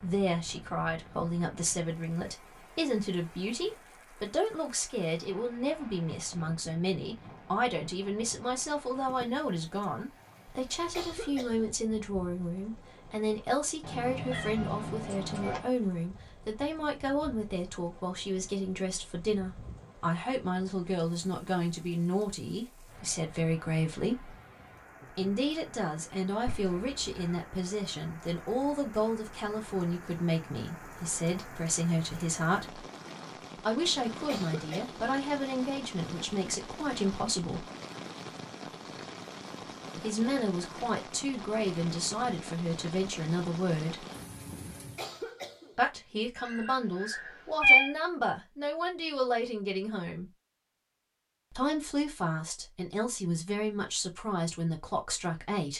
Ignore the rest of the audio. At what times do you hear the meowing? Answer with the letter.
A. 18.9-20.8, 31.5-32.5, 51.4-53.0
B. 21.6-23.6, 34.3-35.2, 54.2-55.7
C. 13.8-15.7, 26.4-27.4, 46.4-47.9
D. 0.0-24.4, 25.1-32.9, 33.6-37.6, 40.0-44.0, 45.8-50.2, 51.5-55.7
C.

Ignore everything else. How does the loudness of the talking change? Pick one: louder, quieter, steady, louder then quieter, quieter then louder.
steady.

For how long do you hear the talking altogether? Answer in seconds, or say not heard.
49 s.